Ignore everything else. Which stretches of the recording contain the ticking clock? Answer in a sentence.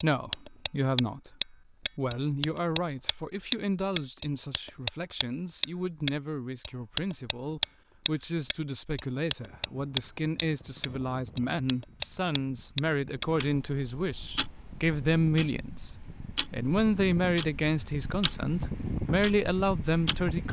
You can hear the ticking clock from 0.0 to 20.4 s.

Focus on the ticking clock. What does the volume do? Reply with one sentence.
The loudness of the ticking clock goes down.